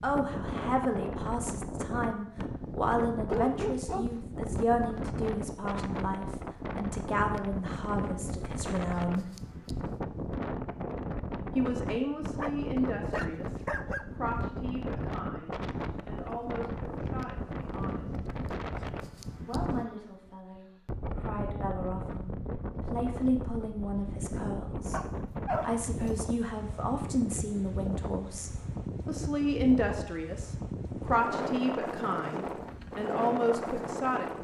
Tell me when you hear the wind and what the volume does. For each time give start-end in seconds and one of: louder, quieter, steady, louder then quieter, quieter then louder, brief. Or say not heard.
0.0-34.3 steady.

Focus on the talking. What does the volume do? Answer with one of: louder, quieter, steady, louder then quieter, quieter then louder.
quieter then louder.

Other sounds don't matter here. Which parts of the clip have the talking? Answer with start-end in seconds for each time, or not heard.
0.0-9.3, 11.6-18.2, 19.4-34.3.